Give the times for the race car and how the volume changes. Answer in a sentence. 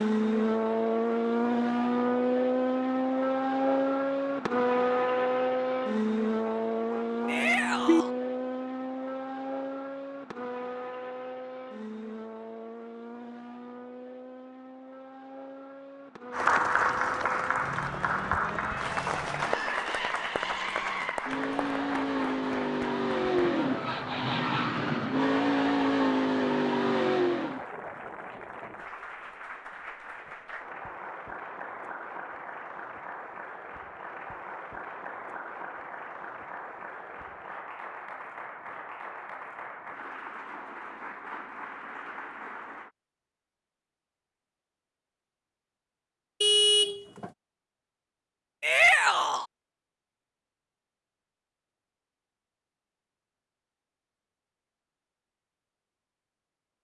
The race car can be heard from 0.0 to 27.6 s, getting quieter then louder.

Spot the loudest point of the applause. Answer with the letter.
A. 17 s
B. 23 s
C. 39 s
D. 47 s
A.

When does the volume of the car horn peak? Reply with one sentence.
The loudest moment of the car horn is at 47 seconds.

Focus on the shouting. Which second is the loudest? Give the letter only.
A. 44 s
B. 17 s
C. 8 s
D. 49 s
D.